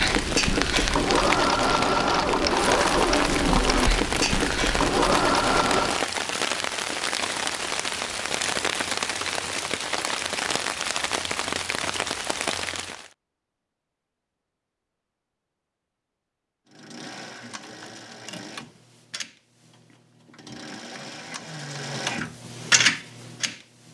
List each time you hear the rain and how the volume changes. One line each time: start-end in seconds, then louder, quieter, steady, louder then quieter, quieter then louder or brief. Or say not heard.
0.0-13.1 steady.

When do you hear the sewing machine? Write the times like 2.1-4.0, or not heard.
0.0-6.0, 16.6-23.8.